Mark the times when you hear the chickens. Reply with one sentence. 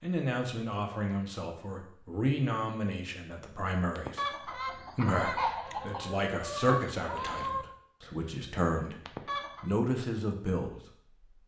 The chickens can be heard from 4.0 to 9.8 s.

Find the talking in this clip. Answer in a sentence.
You can hear the talking from 0.0 to 9.0 s and from 9.6 to 10.8 s.